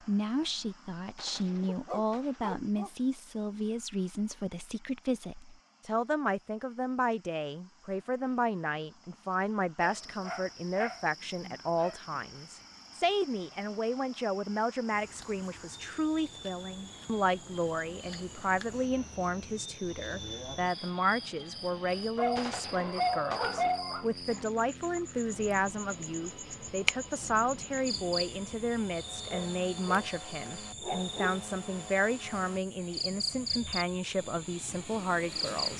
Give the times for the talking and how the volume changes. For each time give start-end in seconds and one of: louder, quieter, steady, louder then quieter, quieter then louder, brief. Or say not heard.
0.1-35.7 steady.